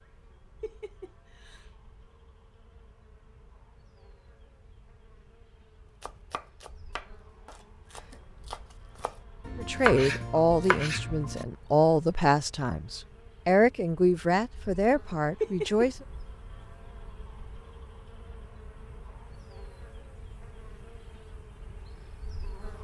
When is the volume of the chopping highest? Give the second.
10 s.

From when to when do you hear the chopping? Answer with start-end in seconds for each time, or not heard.
6.0-11.4.